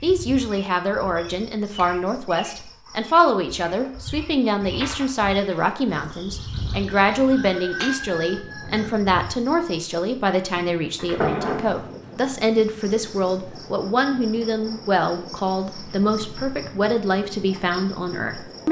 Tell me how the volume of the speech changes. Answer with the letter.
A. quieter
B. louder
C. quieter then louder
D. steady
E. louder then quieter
D.